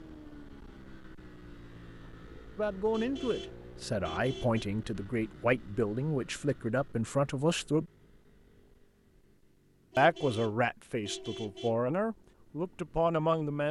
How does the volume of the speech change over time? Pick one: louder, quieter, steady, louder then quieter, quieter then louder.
steady.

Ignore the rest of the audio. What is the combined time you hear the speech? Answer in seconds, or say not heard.
9 s.